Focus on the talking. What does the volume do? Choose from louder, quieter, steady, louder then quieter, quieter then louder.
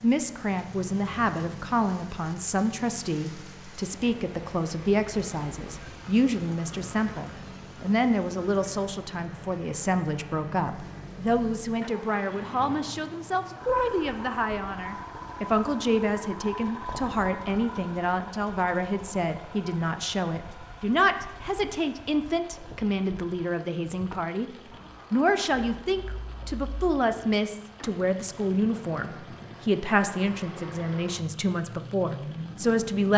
steady.